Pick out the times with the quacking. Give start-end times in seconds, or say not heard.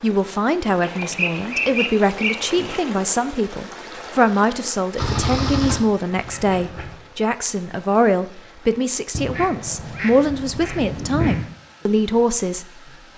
0.8-2.8, 5.0-7.0, 9.1-11.6.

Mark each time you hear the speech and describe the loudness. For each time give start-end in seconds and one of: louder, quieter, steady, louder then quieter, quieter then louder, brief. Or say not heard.
0.0-13.1 steady.